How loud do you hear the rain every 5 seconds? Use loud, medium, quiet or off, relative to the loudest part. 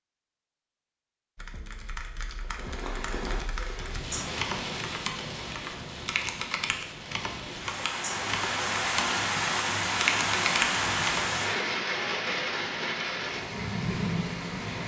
medium, loud, loud.